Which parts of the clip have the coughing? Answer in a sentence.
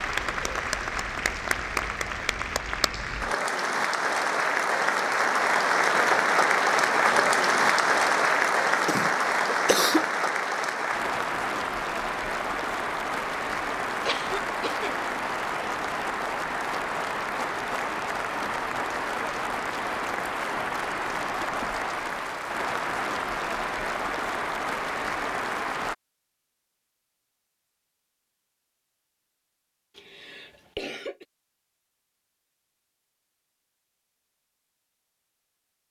The coughing can be heard from 8.7 to 10.1 s, from 14.1 to 14.9 s and from 29.9 to 31.2 s.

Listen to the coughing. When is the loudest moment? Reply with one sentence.
The loudest moment of the coughing is at 10 seconds.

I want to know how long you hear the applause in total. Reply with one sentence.
You can hear the applause for 26 seconds altogether.